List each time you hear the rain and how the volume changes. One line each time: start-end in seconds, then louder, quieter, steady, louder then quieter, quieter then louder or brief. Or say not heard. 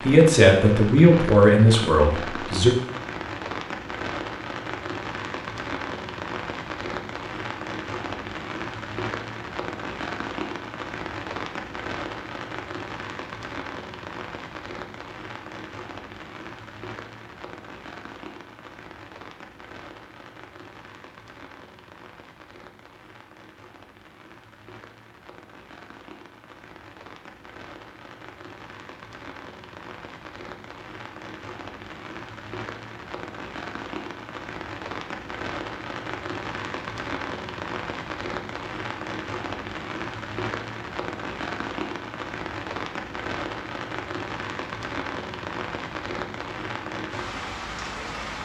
0.0-48.4 quieter then louder.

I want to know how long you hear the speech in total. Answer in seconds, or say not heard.
3 s.